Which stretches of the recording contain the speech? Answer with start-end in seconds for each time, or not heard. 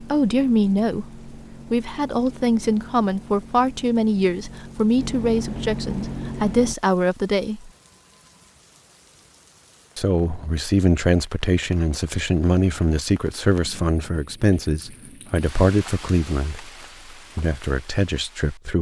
0.0-7.7, 9.9-16.7, 17.4-18.7.